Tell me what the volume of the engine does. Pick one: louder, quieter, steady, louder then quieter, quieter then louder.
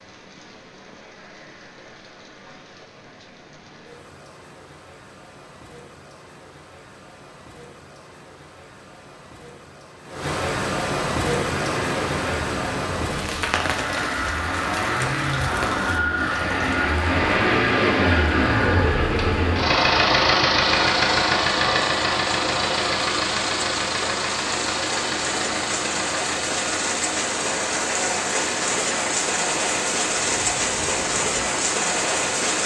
louder then quieter.